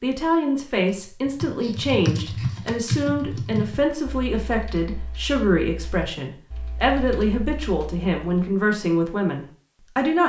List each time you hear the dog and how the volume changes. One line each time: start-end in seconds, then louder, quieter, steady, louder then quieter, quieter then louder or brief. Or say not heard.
not heard.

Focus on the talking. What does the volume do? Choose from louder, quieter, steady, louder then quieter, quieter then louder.
steady.